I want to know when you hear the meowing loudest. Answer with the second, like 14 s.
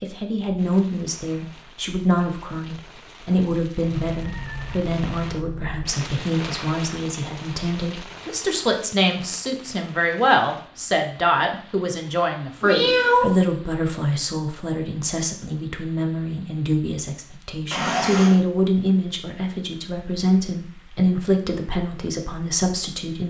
13 s.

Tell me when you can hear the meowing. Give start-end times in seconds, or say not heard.
3.9-5.9, 12.6-13.3, 17.7-18.4.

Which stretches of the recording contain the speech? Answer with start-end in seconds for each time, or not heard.
0.0-23.2.